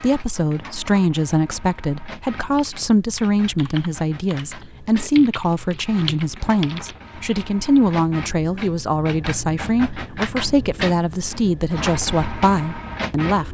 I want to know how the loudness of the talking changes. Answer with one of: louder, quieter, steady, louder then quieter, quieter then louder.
steady.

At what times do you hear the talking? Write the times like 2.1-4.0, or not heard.
0.0-13.4.